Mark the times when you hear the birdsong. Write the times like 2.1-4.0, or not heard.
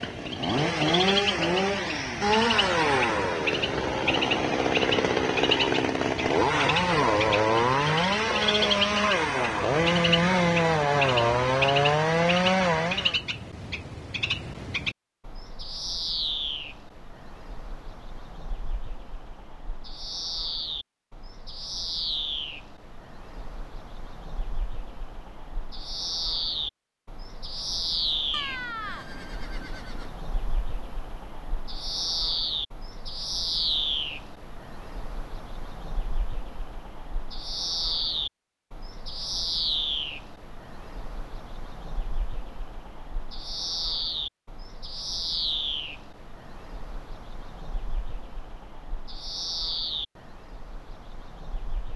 0.0-51.9.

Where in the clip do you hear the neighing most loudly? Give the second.
29 s.